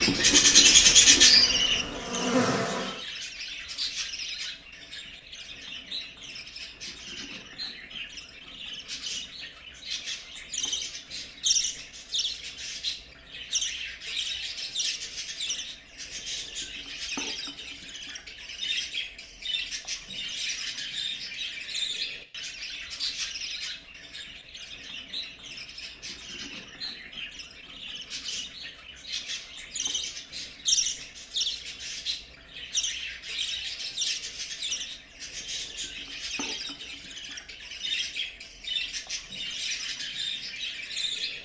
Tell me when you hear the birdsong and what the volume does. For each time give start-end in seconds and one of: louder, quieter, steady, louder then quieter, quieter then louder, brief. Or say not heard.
0.0-41.3 quieter.